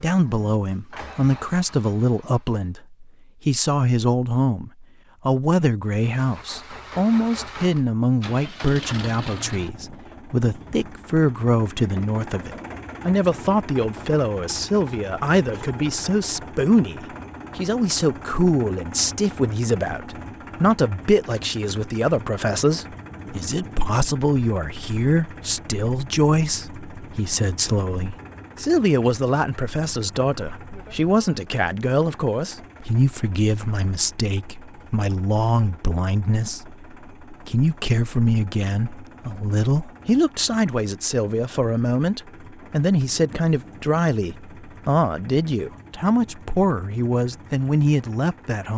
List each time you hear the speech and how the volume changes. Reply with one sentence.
You can hear the speech from 0.0 to 48.7 s, at a steady volume.